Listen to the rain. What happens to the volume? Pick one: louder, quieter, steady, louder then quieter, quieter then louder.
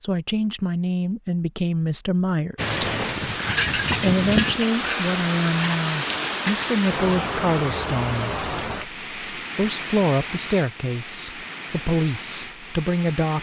quieter.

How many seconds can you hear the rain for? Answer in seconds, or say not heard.
11 s.